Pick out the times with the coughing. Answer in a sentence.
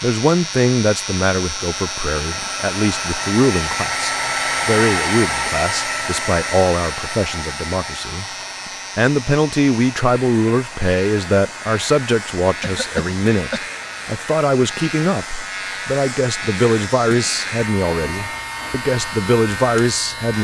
You can hear the coughing from 12.6 to 13.6 s.